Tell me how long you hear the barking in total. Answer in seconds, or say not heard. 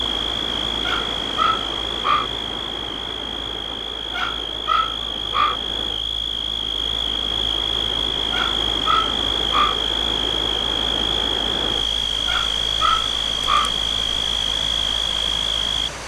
6 s.